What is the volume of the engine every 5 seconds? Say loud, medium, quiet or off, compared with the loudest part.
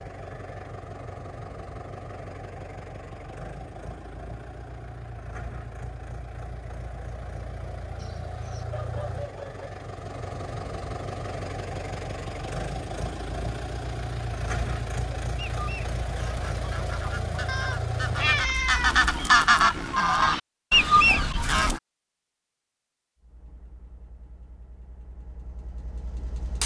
medium, medium, loud, loud, quiet, medium.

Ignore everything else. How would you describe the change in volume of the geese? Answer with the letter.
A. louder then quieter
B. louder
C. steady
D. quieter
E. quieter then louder
B.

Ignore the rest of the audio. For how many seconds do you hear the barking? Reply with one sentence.
The barking can be heard for 2 seconds in total.